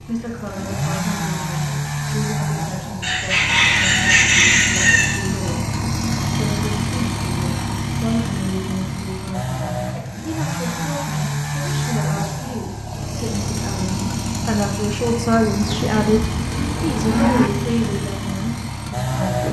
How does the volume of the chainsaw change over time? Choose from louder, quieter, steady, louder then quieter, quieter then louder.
steady.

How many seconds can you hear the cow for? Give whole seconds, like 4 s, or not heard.
2 s.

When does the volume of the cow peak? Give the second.
17 s.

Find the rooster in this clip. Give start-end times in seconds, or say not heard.
3.0-5.2.